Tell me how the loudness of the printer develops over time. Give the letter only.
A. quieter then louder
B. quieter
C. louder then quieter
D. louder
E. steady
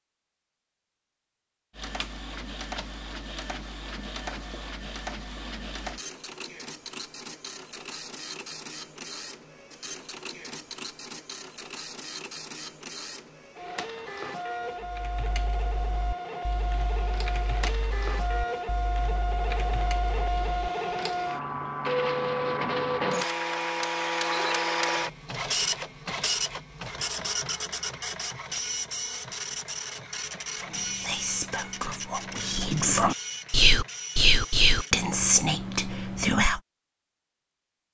C.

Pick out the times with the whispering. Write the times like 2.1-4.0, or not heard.
30.6-36.6.